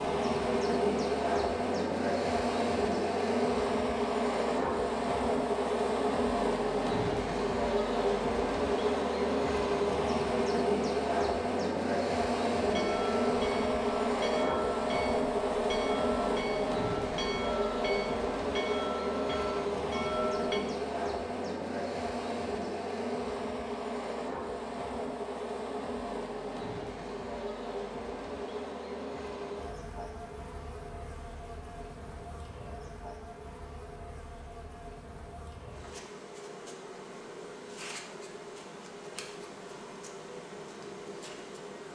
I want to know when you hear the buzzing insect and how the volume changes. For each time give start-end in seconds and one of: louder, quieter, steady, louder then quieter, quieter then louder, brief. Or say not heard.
0.0-41.9 quieter.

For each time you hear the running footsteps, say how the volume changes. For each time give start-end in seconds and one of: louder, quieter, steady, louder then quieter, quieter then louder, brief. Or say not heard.
not heard.